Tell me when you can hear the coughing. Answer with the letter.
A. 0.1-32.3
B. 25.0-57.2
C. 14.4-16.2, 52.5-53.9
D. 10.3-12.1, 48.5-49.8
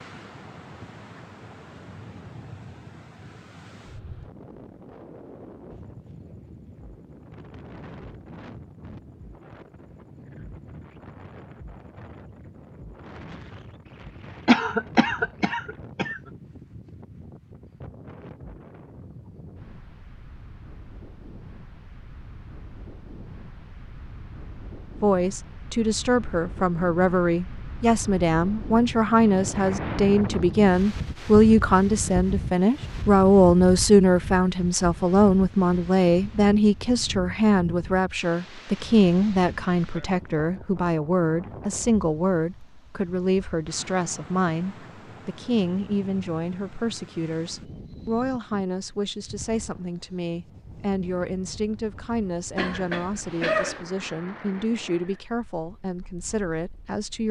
C.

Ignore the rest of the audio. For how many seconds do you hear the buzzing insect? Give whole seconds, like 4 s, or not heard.
not heard.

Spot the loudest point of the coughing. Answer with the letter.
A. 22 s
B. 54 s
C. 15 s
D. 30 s
C.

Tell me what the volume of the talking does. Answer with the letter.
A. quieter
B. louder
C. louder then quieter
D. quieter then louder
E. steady
A.